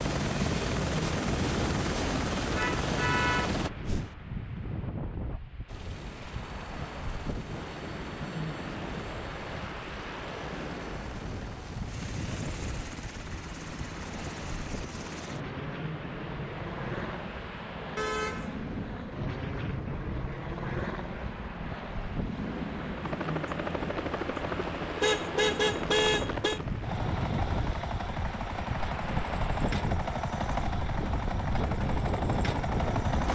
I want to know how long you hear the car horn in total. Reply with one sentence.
The car horn can be heard for 4 seconds in total.